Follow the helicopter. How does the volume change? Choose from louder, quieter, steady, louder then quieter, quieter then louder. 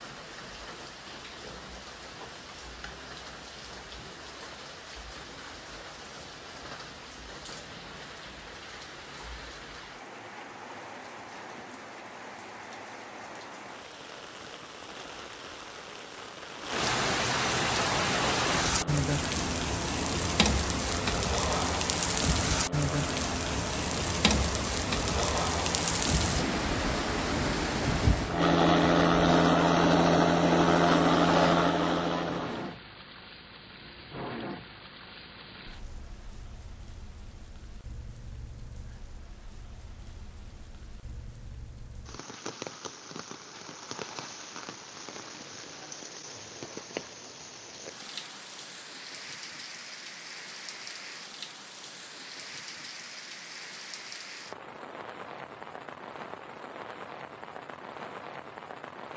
louder.